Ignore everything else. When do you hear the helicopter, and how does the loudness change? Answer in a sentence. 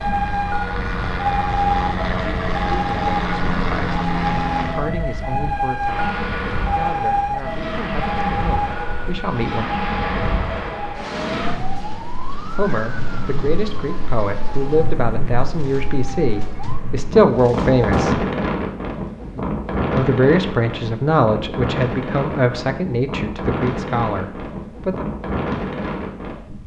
You can hear the helicopter from 0.0 to 4.9 s, getting louder.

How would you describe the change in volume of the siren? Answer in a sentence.
The volume of the siren goes down.